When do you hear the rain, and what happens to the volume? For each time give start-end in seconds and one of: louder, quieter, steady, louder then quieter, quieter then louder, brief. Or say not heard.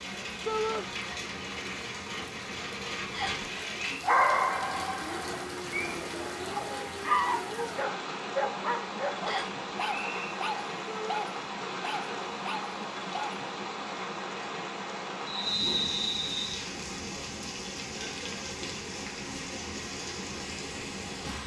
0.0-21.4 steady.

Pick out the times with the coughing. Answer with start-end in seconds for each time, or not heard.
not heard.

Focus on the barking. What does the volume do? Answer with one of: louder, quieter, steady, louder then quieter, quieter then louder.
quieter.